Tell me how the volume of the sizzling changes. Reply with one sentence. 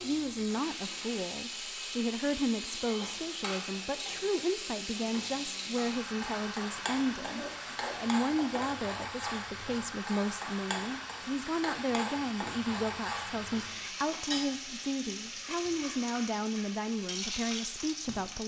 The volume of the sizzling stays about the same.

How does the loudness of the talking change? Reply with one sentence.
The volume of the talking stays about the same.